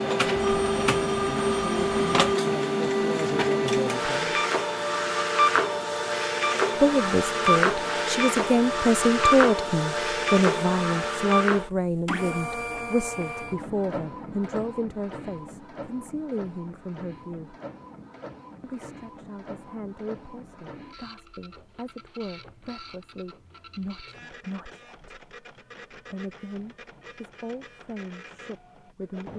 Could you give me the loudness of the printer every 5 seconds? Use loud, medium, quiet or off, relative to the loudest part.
loud, loud, medium, quiet, quiet, quiet.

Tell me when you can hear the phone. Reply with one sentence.
You can hear the phone from 0.3 to 2.4 s.